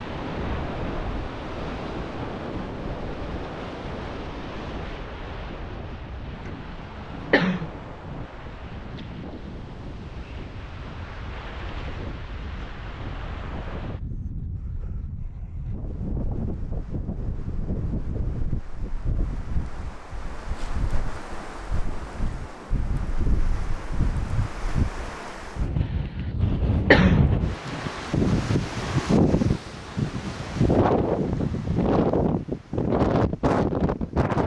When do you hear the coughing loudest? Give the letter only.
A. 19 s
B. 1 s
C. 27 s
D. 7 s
C.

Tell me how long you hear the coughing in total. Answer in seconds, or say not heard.
4 s.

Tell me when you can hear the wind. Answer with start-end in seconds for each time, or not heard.
0.0-34.4.